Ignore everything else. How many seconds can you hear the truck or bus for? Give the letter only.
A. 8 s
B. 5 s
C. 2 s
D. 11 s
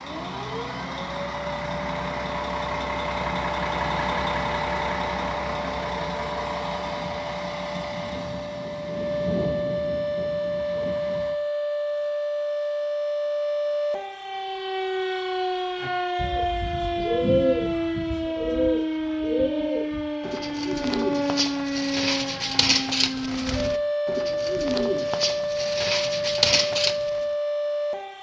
D.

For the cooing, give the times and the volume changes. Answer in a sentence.
The cooing can be heard from 15.8 to 27.2 s, at a steady volume.